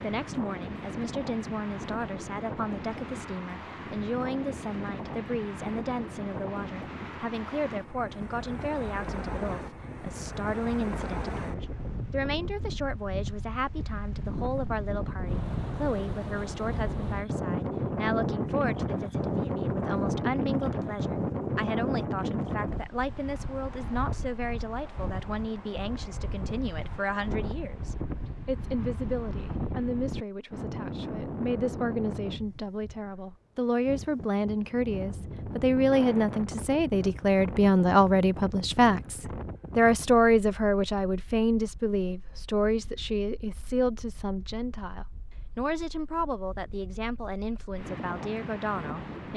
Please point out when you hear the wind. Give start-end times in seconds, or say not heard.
0.0-49.3.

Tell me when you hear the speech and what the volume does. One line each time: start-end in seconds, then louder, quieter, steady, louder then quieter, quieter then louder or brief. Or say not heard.
0.0-49.3 louder.